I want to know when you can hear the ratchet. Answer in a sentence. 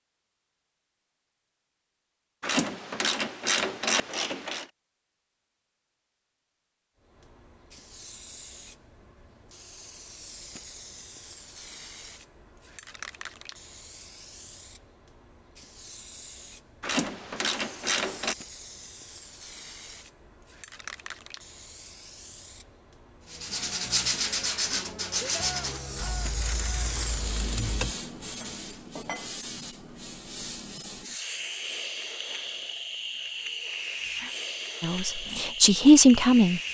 You can hear the ratchet from 2.4 to 4.7 s, from 16.8 to 18.4 s and from 26.0 to 27.9 s.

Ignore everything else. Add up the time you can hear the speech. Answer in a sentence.
You can hear the speech for 2 seconds altogether.